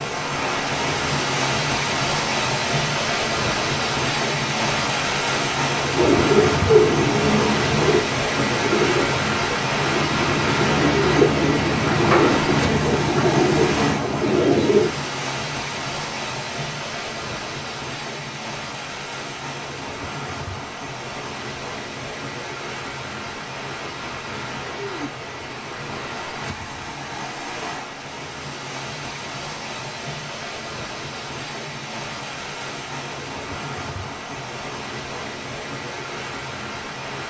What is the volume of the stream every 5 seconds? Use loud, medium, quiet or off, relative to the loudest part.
loud, loud, loud, medium, medium, medium, medium, medium.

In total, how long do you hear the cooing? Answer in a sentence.
You can hear the cooing for 9 seconds altogether.